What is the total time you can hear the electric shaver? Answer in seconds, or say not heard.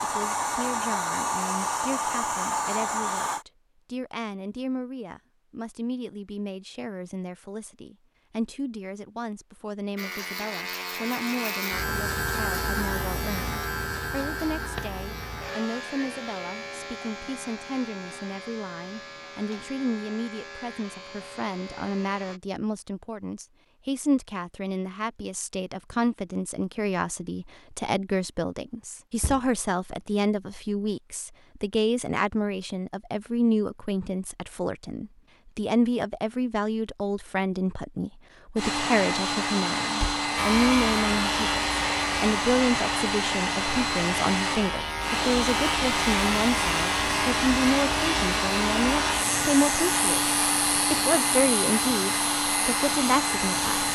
26 s.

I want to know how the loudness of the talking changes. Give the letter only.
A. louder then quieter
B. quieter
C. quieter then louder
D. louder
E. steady
D.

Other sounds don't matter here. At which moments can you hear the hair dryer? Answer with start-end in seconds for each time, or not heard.
0.0-3.5, 38.5-53.8.